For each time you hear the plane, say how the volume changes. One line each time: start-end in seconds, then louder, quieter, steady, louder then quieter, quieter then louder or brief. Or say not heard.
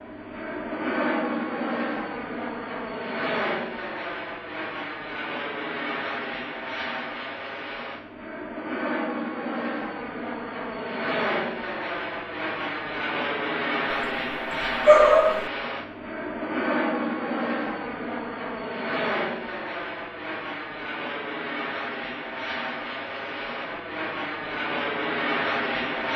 0.0-26.1 steady.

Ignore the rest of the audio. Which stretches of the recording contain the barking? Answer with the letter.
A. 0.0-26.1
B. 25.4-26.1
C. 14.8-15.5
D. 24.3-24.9
C.